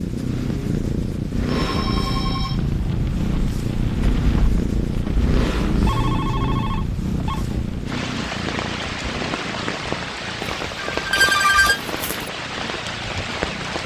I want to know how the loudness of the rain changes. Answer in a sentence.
The volume of the rain stays about the same.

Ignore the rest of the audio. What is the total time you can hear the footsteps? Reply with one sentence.
You can't hear the footsteps here.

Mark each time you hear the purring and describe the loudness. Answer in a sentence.
The purring can be heard from 0.0 to 13.8 s, getting quieter.